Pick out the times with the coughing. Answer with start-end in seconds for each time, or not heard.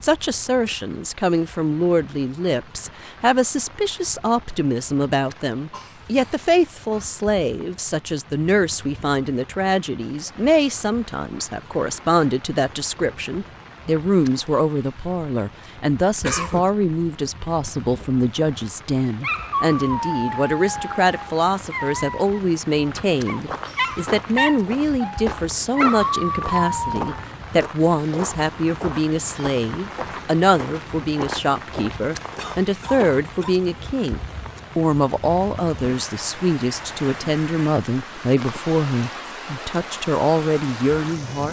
5.7-7.2, 16.2-16.7, 32.4-33.5.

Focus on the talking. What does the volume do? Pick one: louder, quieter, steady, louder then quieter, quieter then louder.
steady.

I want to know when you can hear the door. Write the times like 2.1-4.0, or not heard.
not heard.